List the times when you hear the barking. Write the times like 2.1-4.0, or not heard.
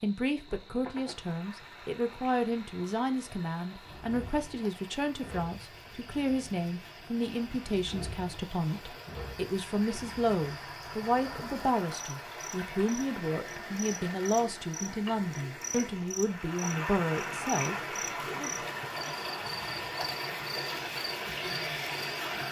not heard.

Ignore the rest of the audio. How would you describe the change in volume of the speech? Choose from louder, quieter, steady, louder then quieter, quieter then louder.
steady.